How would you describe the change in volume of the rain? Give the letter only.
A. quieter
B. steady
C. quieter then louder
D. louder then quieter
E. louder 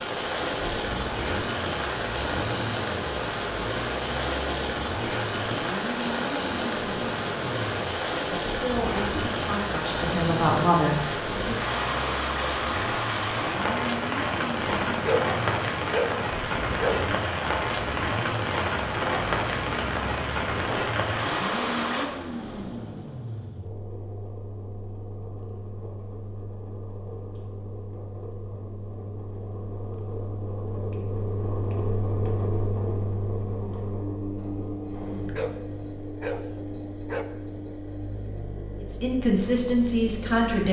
B.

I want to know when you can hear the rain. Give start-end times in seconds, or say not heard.
0.0-22.1.